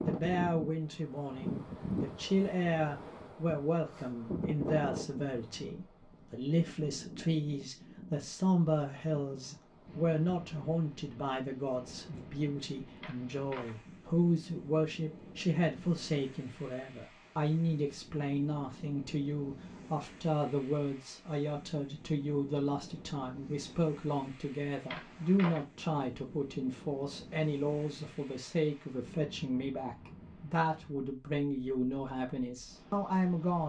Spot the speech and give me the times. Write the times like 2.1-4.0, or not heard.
0.0-33.6.